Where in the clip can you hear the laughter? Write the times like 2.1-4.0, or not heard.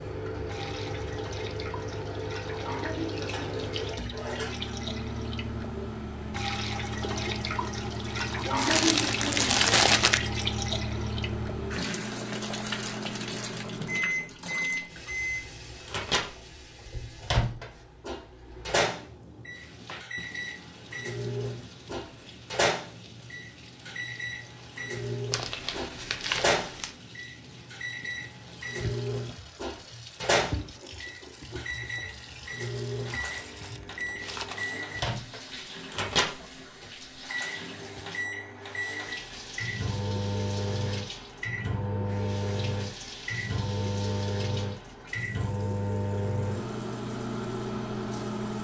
not heard.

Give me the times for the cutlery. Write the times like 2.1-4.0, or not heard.
3.1-4.8.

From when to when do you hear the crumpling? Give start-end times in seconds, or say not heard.
8.6-10.2, 25.3-26.9, 33.0-34.8.